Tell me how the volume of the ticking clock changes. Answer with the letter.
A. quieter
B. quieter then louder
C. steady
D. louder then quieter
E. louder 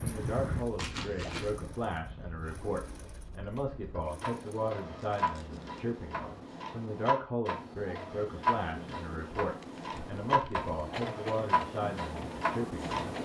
E.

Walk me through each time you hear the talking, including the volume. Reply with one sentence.
The talking can be heard from 0.0 to 13.1 s, at a steady volume.